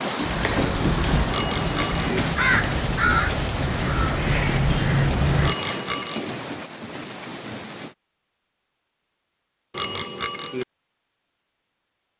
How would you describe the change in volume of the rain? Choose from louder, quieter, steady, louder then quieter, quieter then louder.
quieter.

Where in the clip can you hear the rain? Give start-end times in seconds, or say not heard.
0.0-8.0.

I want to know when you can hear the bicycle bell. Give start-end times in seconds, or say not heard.
1.3-2.2, 5.4-6.3, 9.7-10.7.